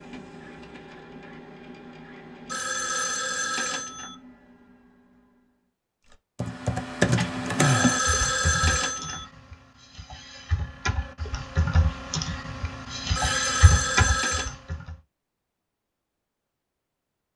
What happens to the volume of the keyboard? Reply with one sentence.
The loudness of the keyboard goes down, then up.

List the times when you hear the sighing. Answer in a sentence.
The sighing can be heard from 7.5 to 8.0 s.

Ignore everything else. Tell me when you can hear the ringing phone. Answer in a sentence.
The ringing phone can be heard from 2.5 to 4.2 s, from 7.5 to 9.2 s and from 13.2 to 14.6 s.